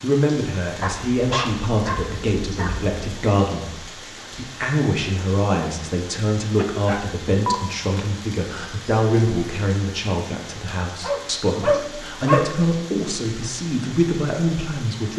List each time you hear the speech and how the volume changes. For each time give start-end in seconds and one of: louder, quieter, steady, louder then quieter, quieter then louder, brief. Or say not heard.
0.0-15.1 steady.